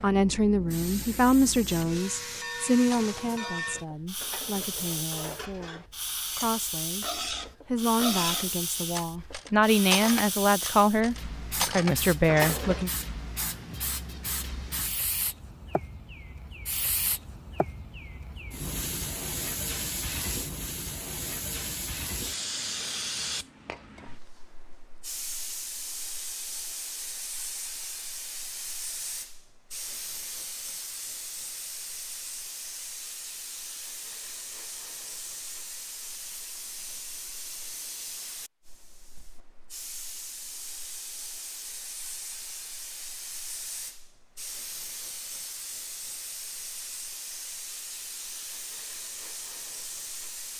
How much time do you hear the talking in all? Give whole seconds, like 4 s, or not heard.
12 s.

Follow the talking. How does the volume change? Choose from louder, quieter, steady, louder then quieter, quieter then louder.
quieter then louder.